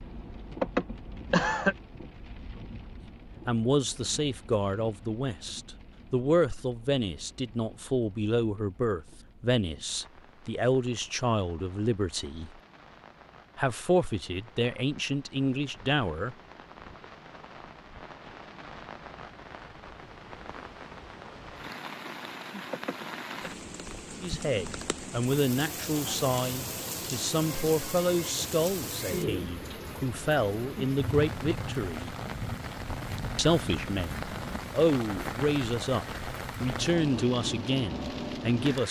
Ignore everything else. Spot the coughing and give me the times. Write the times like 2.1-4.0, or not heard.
0.6-1.8, 22.7-23.5.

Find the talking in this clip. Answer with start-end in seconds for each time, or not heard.
3.5-12.5, 13.6-16.4, 24.2-32.1, 33.4-38.8.